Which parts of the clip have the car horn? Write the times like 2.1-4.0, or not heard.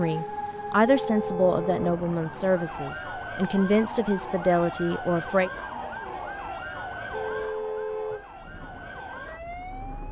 0.8-2.0, 7.1-8.2.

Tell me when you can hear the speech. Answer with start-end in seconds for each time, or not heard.
0.0-5.5.